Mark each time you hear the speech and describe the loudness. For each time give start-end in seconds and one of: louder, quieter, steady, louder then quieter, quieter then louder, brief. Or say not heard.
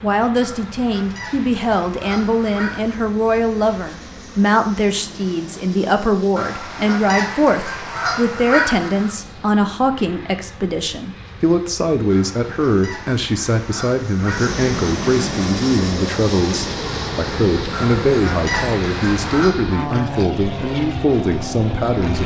0.0-22.2 steady.